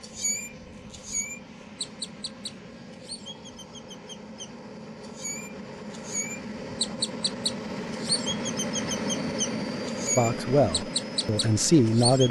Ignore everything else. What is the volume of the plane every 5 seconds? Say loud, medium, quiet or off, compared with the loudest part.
medium, loud, loud.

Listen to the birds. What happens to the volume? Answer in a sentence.
The volume of the birds goes down, then up.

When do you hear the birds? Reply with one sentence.
The birds can be heard from 0.0 to 12.2 s.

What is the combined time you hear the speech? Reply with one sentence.
You can hear the speech for 2 seconds altogether.